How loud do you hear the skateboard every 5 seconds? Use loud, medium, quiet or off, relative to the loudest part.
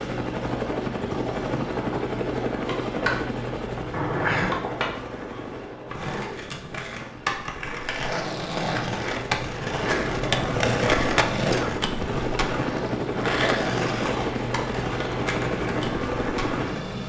medium, loud, loud, medium.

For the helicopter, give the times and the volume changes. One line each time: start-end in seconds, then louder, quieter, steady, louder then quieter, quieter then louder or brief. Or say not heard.
0.0-17.0 quieter then louder.